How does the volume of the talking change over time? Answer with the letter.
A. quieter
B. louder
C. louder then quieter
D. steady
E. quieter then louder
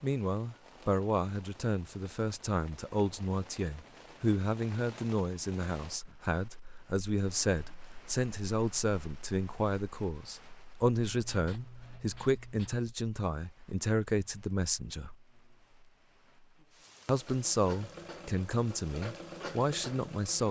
D.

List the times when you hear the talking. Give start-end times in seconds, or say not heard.
0.0-15.2, 17.1-20.4.